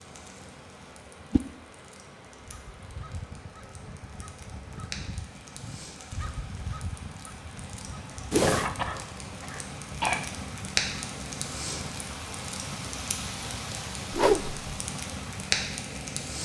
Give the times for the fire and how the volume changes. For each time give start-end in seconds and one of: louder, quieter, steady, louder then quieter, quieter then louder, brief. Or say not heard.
0.0-16.3 louder.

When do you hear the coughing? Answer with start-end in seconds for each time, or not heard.
8.4-10.2.